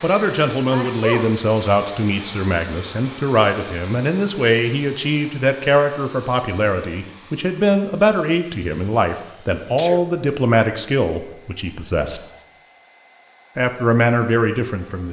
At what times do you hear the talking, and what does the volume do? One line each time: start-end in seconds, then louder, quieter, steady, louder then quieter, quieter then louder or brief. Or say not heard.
0.0-12.2 steady
13.6-15.0 brief.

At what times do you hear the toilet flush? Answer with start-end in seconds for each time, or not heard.
not heard.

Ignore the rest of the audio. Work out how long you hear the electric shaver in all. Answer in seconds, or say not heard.
not heard.